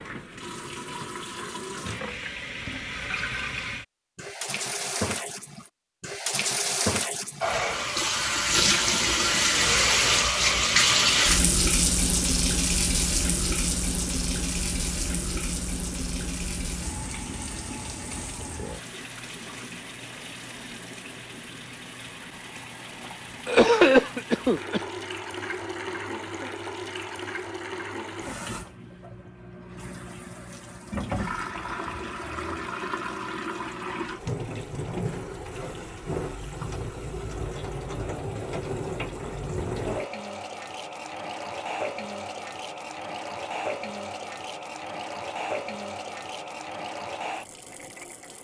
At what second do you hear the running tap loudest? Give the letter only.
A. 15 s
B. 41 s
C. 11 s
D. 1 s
C.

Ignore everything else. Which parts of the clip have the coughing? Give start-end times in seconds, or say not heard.
23.4-24.8.